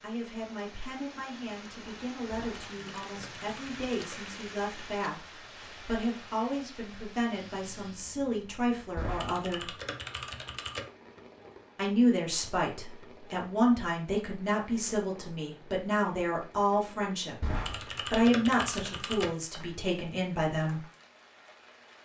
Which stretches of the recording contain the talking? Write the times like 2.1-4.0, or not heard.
0.0-9.7, 11.8-20.8.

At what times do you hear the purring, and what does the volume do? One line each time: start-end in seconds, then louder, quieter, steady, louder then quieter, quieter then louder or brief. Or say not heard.
not heard.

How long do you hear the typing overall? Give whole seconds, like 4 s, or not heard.
6 s.